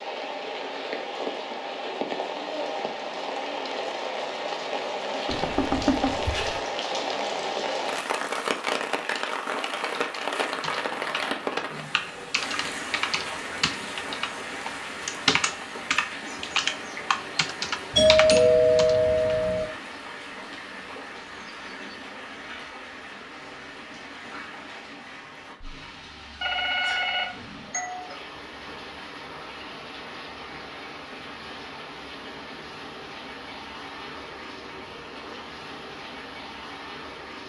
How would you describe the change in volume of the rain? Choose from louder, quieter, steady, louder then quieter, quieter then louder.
quieter.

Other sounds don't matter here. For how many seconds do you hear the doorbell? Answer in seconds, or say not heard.
5 s.